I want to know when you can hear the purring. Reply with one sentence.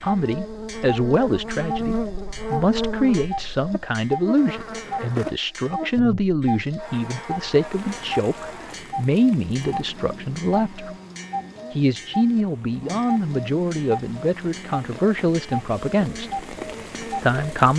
You can't hear the purring here.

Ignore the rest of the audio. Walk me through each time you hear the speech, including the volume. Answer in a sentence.
You can hear the speech from 0.0 to 10.9 s, at a steady volume; from 11.8 to 16.4 s, at a steady volume; and briefly from 17.2 to 17.7 s.